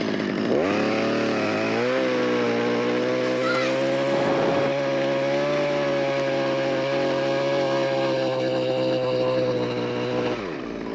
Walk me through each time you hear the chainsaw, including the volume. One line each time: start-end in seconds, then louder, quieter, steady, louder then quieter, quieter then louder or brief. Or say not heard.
0.0-10.9 steady.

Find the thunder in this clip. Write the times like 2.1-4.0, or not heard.
3.2-4.7.